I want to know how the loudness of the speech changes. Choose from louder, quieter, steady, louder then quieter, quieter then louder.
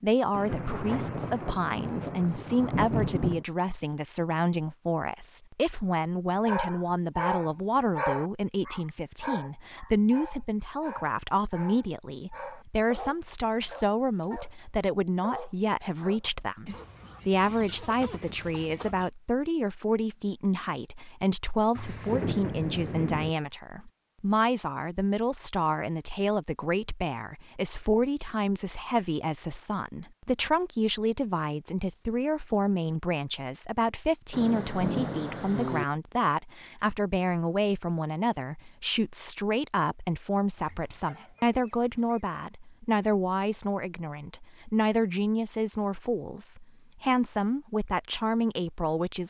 steady.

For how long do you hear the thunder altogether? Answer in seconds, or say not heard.
6 s.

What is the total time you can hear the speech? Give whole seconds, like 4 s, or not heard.
49 s.